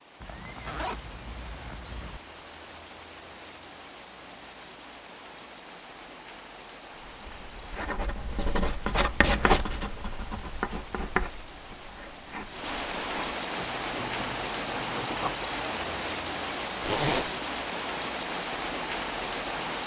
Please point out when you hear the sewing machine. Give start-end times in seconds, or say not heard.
not heard.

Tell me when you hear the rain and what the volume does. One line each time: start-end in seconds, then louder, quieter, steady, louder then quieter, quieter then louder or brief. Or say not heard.
0.0-19.8 louder.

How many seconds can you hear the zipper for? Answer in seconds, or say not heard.
4 s.